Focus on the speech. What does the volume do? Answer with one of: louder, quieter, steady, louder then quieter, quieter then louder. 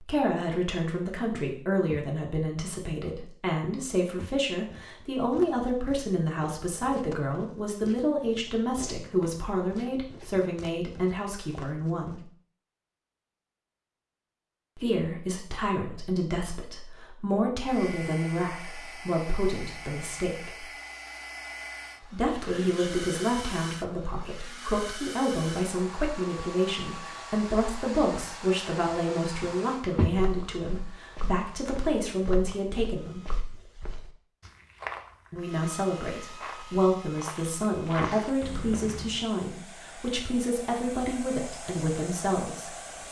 steady.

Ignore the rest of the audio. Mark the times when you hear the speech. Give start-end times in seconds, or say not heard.
0.0-12.2, 14.8-20.6, 22.0-33.2, 35.3-43.0.